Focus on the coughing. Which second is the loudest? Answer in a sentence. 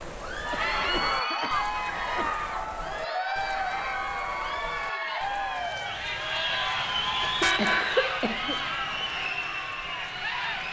The loudest moment of the coughing is at 8 seconds.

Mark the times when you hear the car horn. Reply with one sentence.
The car horn can be heard from 6.9 to 7.8 s.